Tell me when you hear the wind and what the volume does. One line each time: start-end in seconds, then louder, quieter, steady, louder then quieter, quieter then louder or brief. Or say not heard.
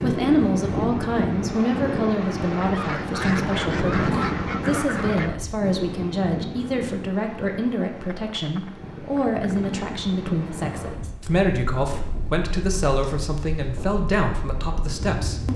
0.0-15.5 quieter.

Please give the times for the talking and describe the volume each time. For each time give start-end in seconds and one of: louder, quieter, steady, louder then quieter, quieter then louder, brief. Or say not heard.
0.0-15.5 steady.